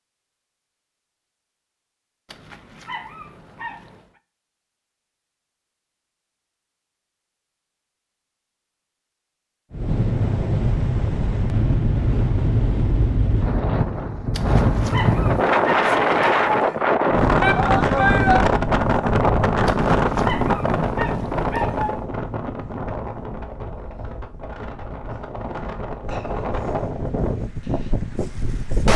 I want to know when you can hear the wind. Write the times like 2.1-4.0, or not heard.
9.7-28.9.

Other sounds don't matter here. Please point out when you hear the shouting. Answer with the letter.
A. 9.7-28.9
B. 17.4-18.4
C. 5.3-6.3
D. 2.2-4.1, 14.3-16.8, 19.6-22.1
B.